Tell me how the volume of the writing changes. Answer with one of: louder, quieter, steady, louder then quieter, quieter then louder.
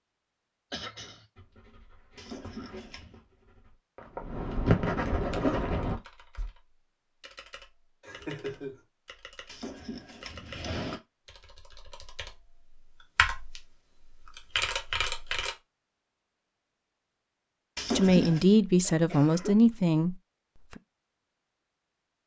louder.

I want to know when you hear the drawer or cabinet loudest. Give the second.
18 s.